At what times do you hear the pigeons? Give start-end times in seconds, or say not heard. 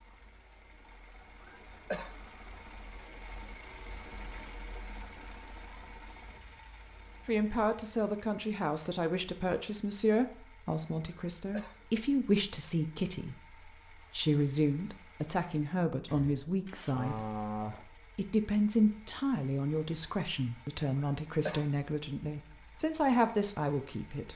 16.1-17.9.